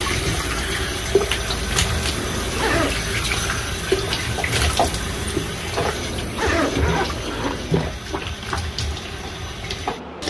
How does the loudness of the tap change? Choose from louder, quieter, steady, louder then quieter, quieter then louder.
quieter.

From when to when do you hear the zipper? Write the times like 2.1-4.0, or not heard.
2.1-3.0, 5.9-7.8.